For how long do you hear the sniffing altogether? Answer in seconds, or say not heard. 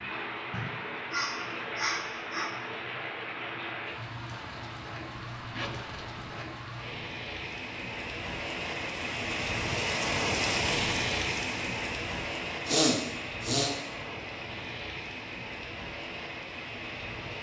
3 s.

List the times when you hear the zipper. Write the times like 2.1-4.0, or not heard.
5.1-6.5.